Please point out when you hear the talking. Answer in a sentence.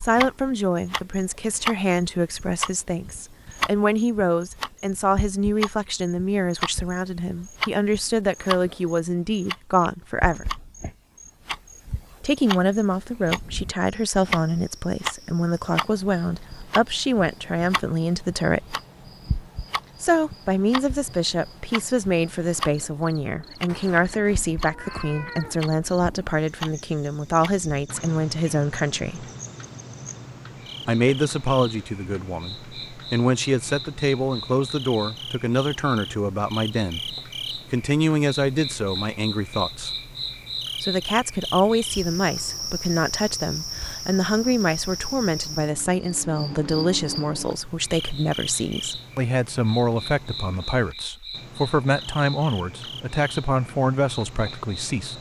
You can hear the talking from 0.0 to 10.4 s, from 12.2 to 18.8 s, from 20.0 to 29.2 s, from 30.9 to 39.9 s and from 40.8 to 55.1 s.